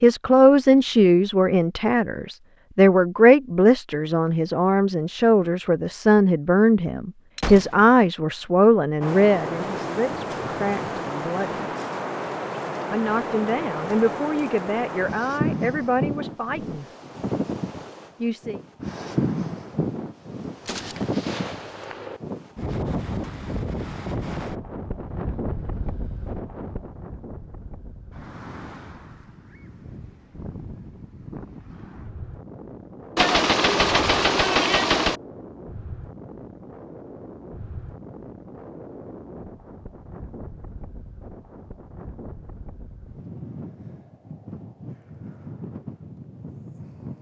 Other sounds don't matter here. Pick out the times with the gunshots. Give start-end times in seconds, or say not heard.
7.3-8.1, 20.6-22.2, 33.1-35.1.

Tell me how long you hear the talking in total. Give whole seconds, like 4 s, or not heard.
16 s.